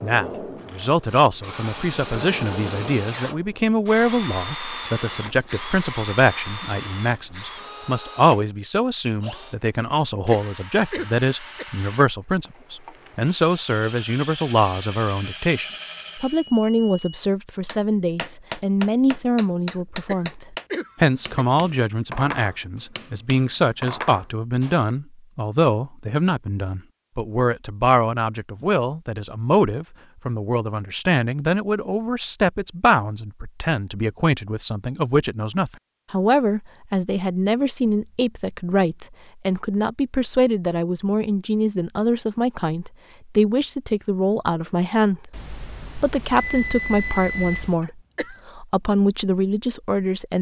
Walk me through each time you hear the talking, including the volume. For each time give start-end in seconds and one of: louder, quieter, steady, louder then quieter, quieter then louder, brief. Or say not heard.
0.0-50.3 steady.